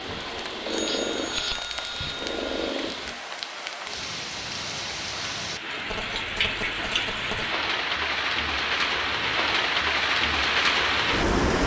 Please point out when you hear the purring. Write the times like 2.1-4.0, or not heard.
0.0-3.1.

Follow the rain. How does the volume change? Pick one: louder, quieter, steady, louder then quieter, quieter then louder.
louder.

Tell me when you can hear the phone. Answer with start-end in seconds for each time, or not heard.
0.7-2.7, 5.8-7.6.